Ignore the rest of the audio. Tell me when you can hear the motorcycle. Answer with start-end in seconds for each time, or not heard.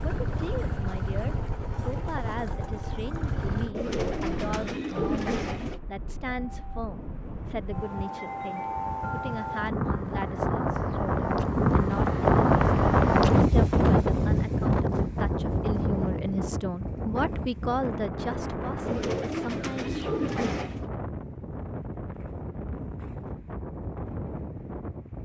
0.0-3.8.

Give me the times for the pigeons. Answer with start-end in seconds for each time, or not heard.
3.7-5.8, 18.9-20.9.